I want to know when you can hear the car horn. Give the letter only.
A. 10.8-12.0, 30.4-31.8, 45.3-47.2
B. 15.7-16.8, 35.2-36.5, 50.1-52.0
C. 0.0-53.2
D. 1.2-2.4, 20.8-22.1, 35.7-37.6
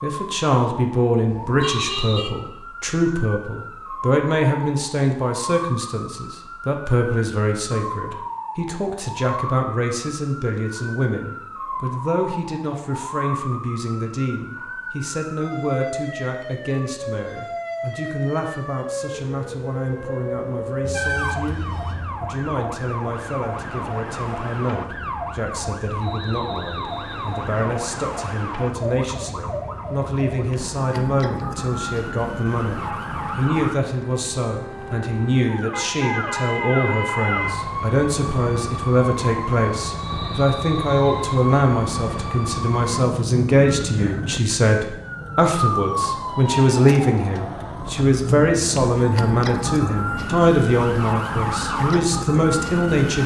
D.